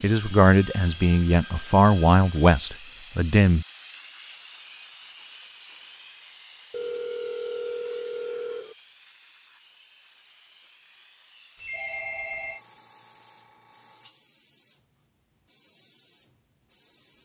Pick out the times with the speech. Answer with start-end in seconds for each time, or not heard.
0.0-3.6.